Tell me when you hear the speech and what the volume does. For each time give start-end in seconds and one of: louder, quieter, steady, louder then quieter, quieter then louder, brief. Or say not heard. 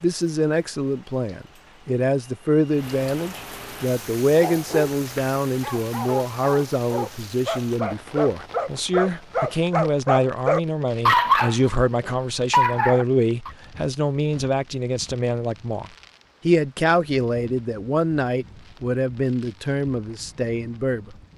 0.0-21.1 steady.